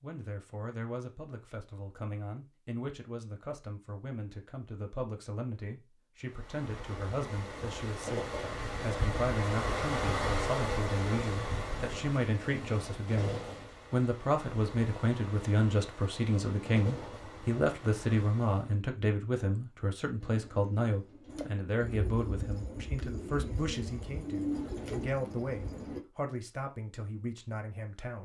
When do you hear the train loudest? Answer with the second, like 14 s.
10 s.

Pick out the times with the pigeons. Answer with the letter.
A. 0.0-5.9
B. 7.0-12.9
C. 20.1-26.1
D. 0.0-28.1
C.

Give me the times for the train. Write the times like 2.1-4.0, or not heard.
6.2-18.8.